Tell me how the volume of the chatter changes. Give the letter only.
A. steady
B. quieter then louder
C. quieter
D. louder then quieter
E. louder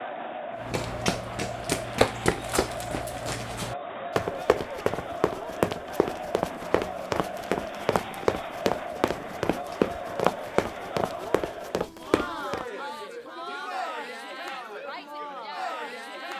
A.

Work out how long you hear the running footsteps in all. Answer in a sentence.
The running footsteps can be heard for 12 seconds in total.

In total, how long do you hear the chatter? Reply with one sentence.
The chatter can be heard for 16 seconds in total.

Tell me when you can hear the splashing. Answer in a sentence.
You can't hear the splashing here.